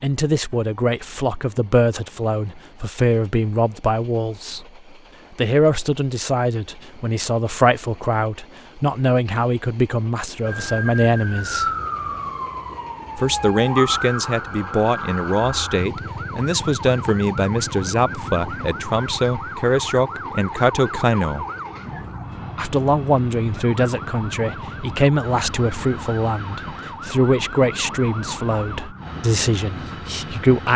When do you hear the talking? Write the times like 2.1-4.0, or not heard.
0.0-4.7, 5.3-11.7, 13.2-21.4, 22.6-30.7.